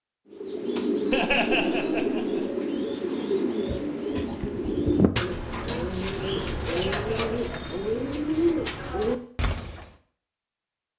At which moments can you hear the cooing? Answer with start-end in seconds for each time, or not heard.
0.3-9.9.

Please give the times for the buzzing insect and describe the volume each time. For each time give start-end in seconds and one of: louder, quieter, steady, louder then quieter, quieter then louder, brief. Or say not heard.
not heard.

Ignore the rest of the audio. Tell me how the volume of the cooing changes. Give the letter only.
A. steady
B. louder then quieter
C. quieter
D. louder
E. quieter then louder
A.